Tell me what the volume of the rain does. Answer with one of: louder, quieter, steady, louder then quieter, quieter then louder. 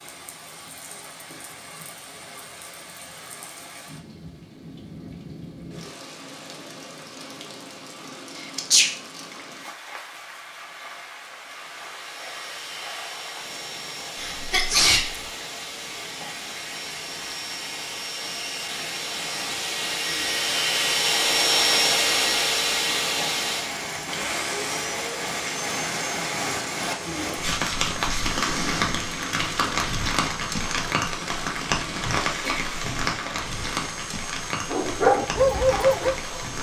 louder.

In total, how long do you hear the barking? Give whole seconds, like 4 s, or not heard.
2 s.